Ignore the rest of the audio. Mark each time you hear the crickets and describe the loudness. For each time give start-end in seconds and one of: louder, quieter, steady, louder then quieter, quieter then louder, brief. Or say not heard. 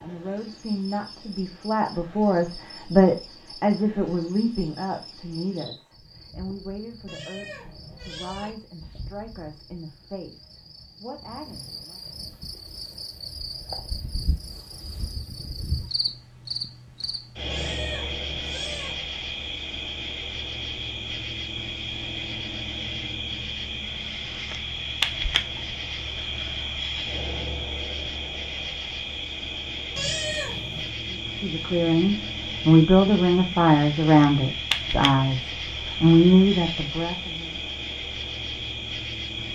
0.0-39.4 louder.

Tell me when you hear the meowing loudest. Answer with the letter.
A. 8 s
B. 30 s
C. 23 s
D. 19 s
B.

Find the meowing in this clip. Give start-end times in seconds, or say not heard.
7.0-8.5, 17.5-18.9, 29.9-30.9.